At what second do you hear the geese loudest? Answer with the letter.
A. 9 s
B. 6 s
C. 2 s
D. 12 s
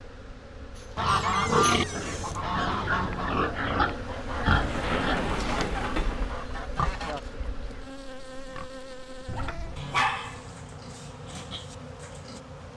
C.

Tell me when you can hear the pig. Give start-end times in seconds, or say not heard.
0.8-12.4.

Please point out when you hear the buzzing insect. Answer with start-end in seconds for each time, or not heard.
0.0-12.7.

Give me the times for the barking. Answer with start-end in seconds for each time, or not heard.
9.3-10.4.